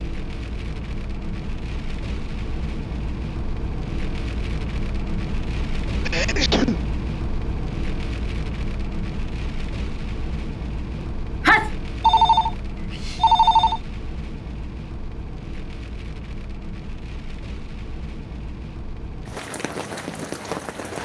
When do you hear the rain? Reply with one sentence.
The rain can be heard from 0.0 to 20.9 s.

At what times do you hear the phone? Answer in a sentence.
The phone can be heard from 12.0 to 13.8 s.